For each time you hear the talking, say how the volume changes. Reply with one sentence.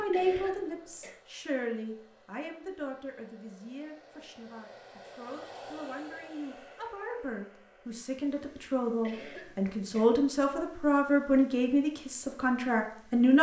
You can hear the talking from 0.0 to 13.3 s, getting quieter then louder.